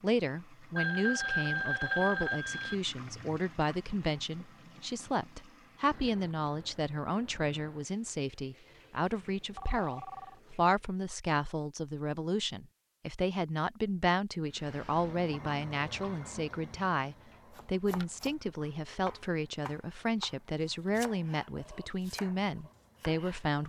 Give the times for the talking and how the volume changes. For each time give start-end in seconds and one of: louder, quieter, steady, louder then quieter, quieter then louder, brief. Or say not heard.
0.0-23.6 steady.